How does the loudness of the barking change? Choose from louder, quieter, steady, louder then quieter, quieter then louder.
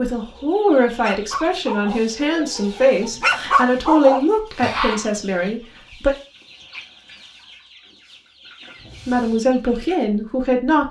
quieter then louder.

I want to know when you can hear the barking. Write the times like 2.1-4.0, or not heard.
0.2-5.0.